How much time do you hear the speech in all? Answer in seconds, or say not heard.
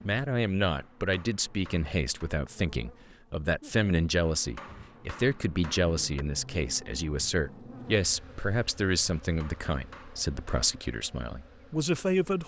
12 s.